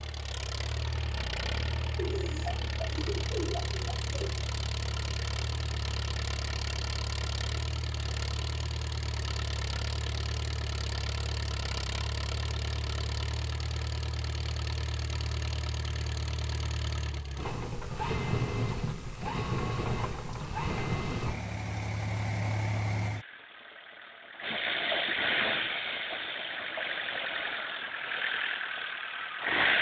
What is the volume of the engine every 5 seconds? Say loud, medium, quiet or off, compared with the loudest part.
medium, medium, medium, loud, loud, loud.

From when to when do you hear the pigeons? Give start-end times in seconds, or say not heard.
1.9-4.5.